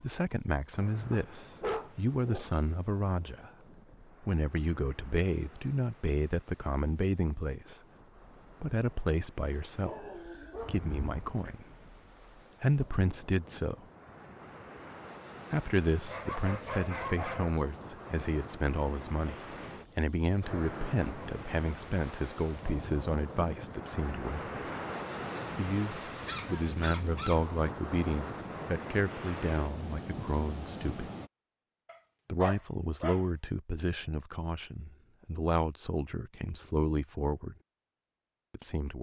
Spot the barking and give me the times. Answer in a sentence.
The barking can be heard from 1.1 to 2.6 s, from 9.8 to 11.6 s, from 16.1 to 17.6 s, from 26.1 to 27.4 s and from 31.9 to 33.2 s.